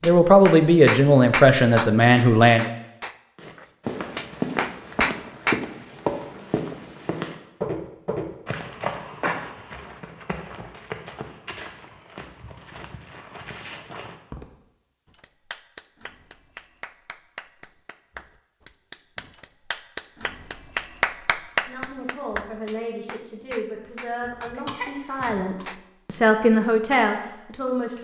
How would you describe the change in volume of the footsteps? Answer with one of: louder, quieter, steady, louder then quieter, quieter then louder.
quieter.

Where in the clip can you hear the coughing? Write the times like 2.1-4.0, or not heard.
24.2-25.6.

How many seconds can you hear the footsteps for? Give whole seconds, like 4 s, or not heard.
11 s.